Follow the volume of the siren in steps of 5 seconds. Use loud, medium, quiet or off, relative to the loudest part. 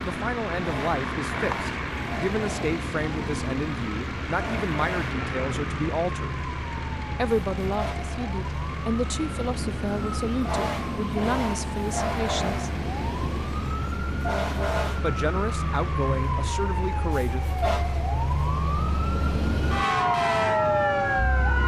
quiet, quiet, medium, medium, loud.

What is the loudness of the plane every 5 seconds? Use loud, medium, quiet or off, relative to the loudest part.
loud, loud, medium, medium, off.